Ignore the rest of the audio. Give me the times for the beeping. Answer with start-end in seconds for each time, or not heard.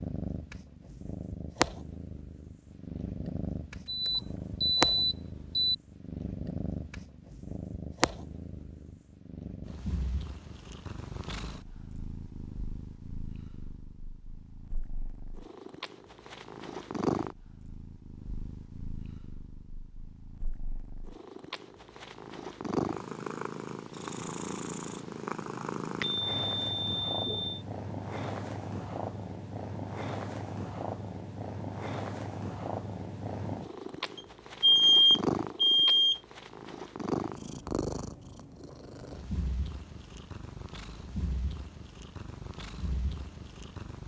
3.9-5.8, 26.0-27.6, 34.1-36.2.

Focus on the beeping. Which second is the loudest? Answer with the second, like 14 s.
35 s.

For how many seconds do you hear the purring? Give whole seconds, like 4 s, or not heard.
44 s.